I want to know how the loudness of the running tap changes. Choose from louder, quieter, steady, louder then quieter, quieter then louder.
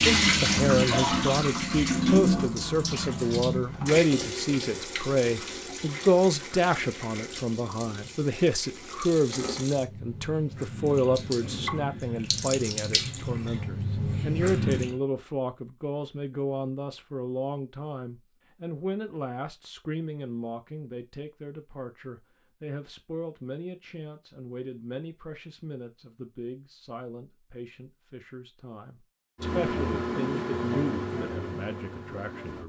quieter then louder.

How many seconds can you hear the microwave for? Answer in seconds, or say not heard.
3 s.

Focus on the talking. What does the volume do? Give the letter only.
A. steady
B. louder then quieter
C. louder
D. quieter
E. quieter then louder
D.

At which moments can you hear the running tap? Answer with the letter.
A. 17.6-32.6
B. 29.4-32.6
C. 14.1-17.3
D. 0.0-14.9
D.